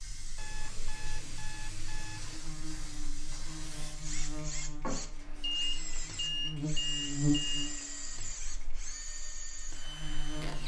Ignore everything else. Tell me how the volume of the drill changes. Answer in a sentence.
The loudness of the drill stays about the same.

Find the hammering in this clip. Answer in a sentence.
You can't hear the hammering here.